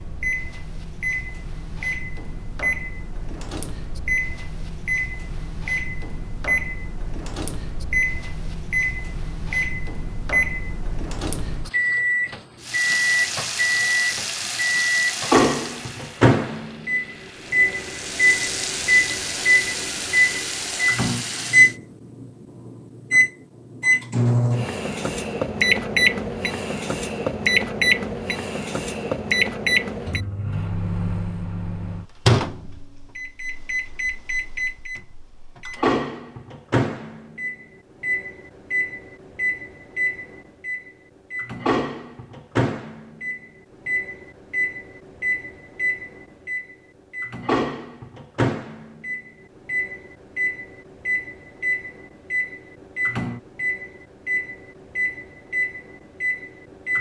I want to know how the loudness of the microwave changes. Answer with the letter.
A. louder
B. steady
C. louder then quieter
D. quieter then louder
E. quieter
C.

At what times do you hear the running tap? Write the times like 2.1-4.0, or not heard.
12.6-21.8.